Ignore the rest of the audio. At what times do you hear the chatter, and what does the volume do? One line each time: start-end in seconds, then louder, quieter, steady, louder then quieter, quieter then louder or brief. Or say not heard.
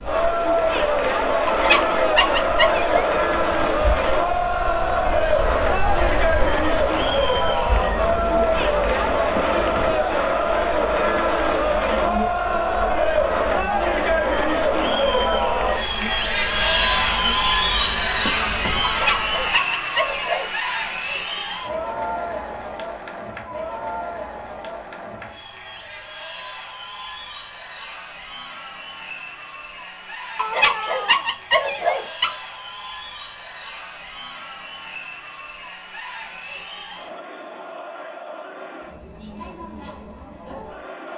0.0-41.1 quieter.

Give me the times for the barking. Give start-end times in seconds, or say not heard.
1.4-3.1, 18.8-20.5, 30.4-32.4.